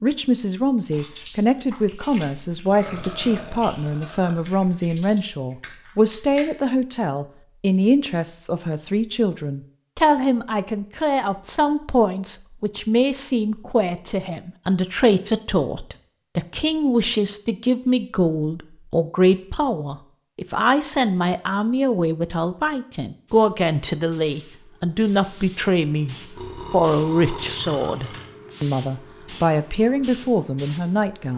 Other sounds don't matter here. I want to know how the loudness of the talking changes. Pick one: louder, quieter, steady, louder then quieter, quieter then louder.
steady.